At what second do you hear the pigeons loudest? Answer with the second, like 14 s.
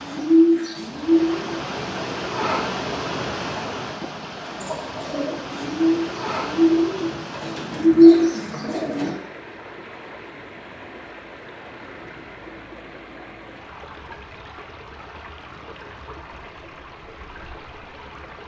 8 s.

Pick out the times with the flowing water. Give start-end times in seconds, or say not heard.
0.0-18.4.